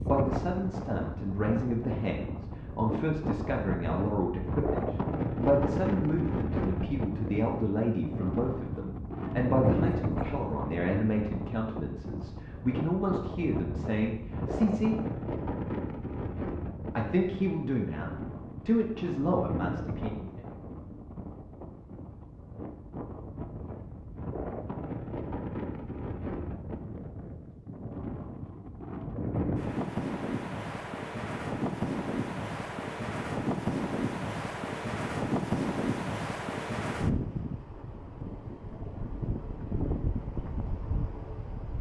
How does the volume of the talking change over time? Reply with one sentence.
The volume of the talking stays about the same.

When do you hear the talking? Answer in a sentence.
The talking can be heard from 0.1 to 15.0 s and from 16.9 to 20.3 s.